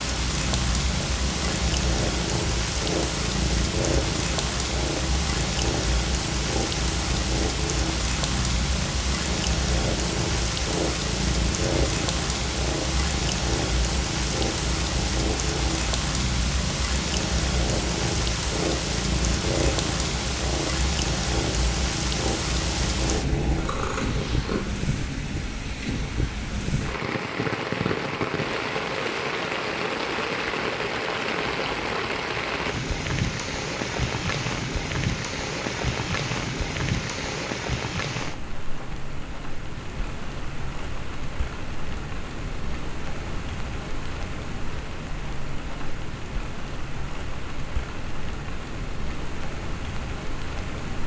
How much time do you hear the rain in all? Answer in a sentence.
You can hear the rain for 51 seconds altogether.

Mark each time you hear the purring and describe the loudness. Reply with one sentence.
The purring can be heard from 0.0 to 24.6 s, at a steady volume.